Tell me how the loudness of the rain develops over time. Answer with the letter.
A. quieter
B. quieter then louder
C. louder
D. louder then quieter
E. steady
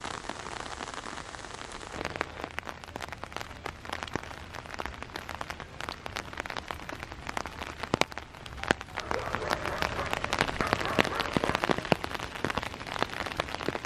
C.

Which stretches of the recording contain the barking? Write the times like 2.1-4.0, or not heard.
8.9-11.8.